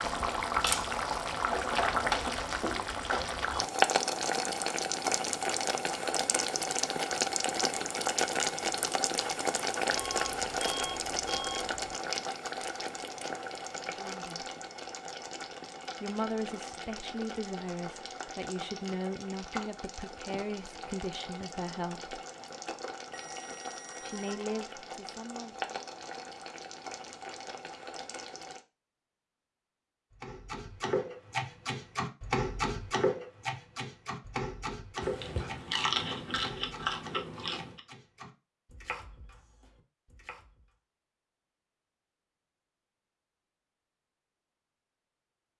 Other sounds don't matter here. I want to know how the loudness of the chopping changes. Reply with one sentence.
The volume of the chopping goes down.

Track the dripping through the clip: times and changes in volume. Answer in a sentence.
You can't hear the dripping here.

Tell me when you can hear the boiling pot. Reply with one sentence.
The boiling pot can be heard from 0.0 to 28.6 s.